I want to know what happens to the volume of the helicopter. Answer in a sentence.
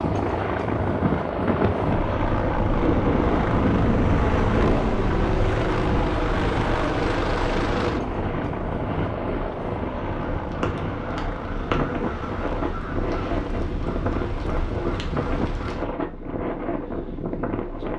The loudness of the helicopter goes down.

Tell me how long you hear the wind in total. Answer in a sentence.
You can hear the wind for 18 seconds altogether.